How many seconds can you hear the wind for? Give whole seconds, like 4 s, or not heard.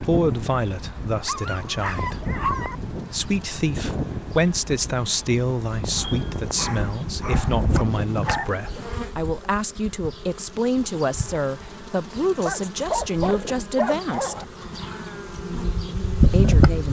9 s.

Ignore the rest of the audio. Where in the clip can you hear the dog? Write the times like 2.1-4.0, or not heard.
1.2-2.8, 6.0-8.5, 12.4-14.4.